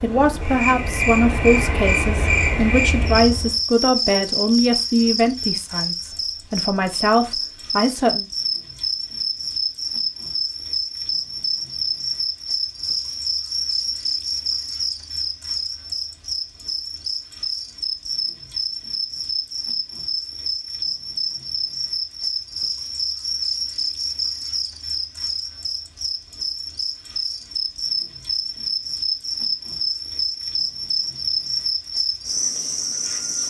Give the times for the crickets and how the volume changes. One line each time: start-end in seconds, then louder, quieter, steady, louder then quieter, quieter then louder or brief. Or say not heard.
0.0-33.4 steady.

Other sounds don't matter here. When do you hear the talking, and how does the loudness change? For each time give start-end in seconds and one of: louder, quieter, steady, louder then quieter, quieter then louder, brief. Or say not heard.
0.0-8.2 steady.